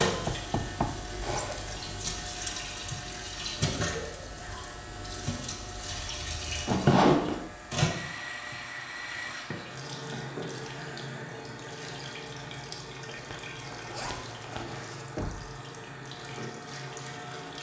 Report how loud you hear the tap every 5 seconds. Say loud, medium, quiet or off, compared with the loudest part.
loud, loud, medium, medium.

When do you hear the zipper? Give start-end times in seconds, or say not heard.
1.2-1.8, 6.7-7.3, 13.1-15.1.